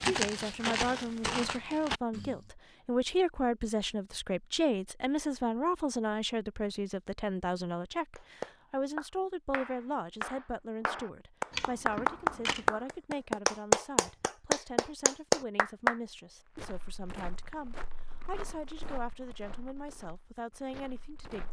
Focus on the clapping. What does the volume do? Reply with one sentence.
The volume of the clapping goes up.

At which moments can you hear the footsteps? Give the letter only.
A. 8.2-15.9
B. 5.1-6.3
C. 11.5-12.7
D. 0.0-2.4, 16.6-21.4
D.